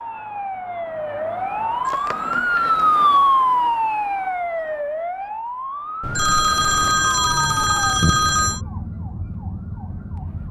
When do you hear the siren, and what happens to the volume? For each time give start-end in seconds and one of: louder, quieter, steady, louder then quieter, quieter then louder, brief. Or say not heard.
0.0-10.4 louder then quieter.